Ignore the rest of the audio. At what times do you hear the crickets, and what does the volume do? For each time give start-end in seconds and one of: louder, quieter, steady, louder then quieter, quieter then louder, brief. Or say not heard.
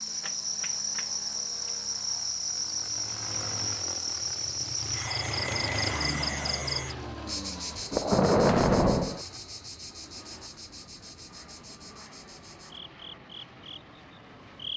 0.0-14.7 quieter.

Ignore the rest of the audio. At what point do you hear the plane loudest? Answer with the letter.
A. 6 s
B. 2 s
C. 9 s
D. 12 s
A.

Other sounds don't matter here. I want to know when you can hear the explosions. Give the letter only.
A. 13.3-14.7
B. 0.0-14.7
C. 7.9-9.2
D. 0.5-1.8
C.